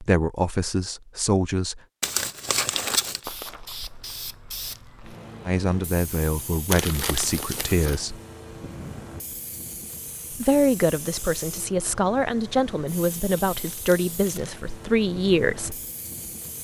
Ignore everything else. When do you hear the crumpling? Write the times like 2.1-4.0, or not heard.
2.0-3.2, 6.7-8.1, 13.5-14.6.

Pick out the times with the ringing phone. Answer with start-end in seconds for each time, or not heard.
not heard.